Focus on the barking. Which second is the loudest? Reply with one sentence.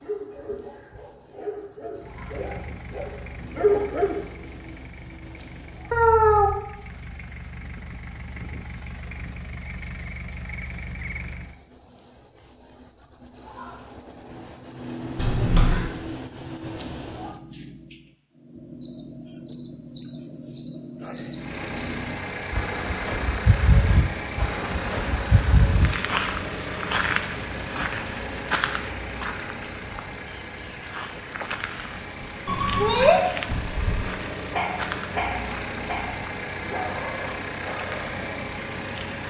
The volume of the barking peaks at 4 seconds.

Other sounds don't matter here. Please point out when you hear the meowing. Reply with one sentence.
The meowing can be heard from 5.9 to 6.6 s, from 15.2 to 15.9 s and from 32.5 to 33.2 s.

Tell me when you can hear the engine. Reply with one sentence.
You can hear the engine from 2.0 to 11.6 s and from 21.4 to 39.2 s.